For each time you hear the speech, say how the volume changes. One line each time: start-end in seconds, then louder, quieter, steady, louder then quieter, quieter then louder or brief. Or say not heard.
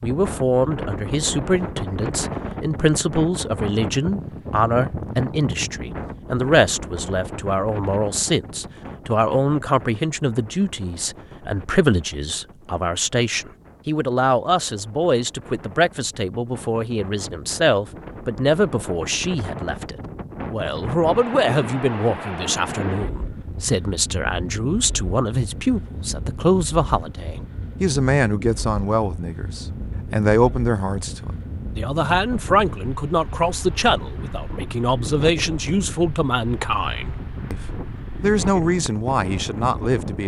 0.0-40.2 steady.